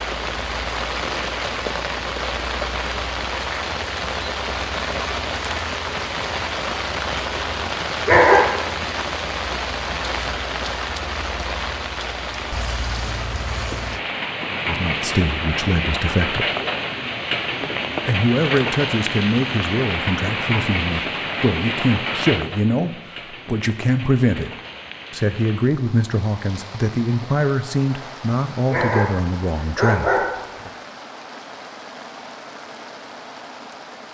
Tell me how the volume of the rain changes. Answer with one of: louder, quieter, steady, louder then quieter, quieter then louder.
quieter.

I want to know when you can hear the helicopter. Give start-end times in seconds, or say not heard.
not heard.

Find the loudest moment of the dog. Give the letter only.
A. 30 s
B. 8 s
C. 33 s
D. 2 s
B.